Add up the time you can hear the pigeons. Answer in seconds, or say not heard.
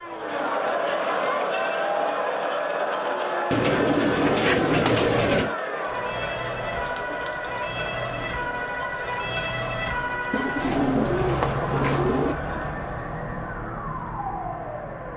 4 s.